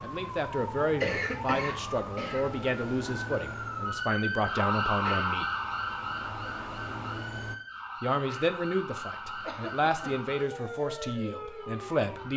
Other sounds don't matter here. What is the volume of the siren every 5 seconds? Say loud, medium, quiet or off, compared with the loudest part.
loud, loud, medium.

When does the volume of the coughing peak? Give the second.
1 s.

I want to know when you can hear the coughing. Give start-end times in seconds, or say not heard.
0.8-2.5, 9.4-10.2.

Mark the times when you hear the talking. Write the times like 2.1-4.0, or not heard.
0.0-5.5, 8.0-12.3.